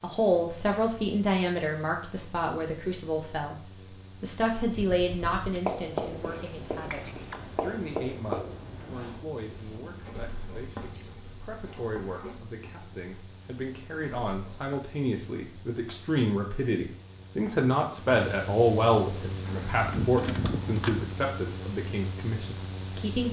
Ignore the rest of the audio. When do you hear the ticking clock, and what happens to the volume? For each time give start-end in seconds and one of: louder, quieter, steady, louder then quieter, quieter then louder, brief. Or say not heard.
not heard.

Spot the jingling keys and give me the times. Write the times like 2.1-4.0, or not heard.
4.7-5.6, 9.2-11.2, 19.4-21.1.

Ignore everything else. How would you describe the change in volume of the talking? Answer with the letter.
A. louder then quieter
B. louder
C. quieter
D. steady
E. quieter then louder
E.